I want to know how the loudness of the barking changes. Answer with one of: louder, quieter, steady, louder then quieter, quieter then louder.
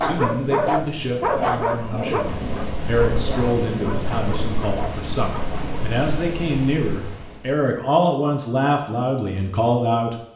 quieter.